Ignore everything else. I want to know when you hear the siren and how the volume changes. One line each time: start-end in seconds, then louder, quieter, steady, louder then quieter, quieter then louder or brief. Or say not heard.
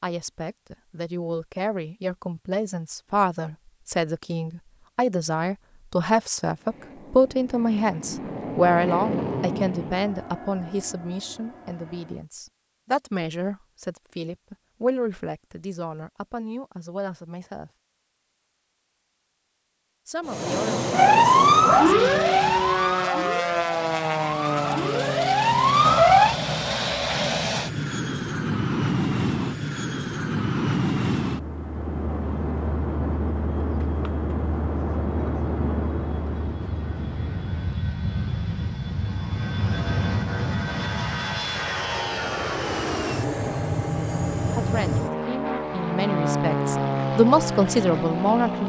20.9-26.4 quieter then louder.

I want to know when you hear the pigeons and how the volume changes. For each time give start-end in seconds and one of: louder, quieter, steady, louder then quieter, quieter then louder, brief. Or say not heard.
not heard.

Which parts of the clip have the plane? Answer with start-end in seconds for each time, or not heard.
6.5-12.2, 20.2-48.6.